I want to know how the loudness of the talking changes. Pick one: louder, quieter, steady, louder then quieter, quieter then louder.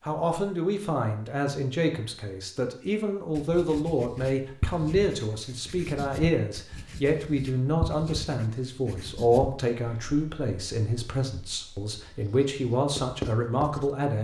steady.